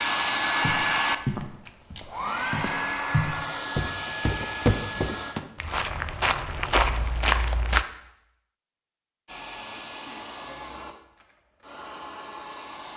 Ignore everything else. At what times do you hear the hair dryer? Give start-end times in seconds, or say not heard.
0.0-5.3, 9.2-12.9.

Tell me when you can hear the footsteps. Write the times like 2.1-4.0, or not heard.
0.6-7.8.